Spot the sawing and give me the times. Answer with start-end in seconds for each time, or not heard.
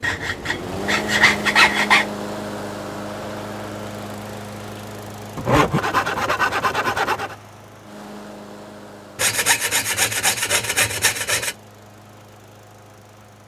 0.0-2.0, 5.3-7.3, 9.2-11.6.